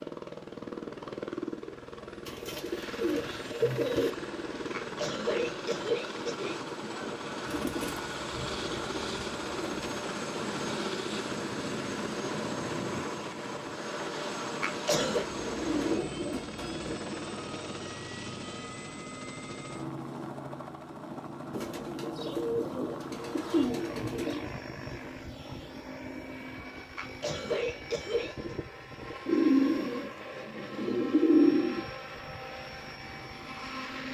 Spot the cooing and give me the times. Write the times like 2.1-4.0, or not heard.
2.2-4.1, 7.5-10.0, 15.1-16.9, 21.5-24.5, 29.2-31.9.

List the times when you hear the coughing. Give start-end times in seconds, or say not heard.
4.7-6.7, 14.6-15.2, 26.9-28.6.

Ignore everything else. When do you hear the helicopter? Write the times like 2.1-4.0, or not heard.
0.0-34.1.